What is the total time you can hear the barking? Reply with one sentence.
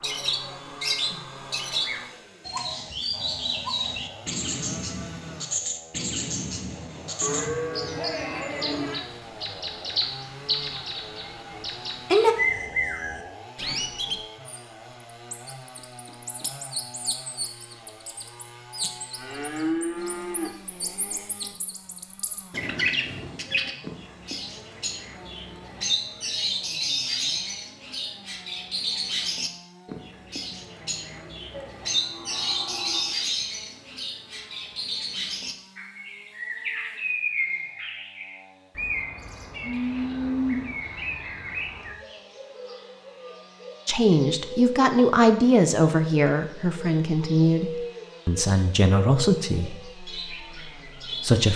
The barking can't be heard in this clip.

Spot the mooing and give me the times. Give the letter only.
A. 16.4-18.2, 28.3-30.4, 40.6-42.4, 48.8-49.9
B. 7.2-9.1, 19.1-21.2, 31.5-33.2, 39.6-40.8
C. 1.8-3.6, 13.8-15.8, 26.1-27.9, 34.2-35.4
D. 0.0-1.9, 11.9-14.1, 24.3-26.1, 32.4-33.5
B.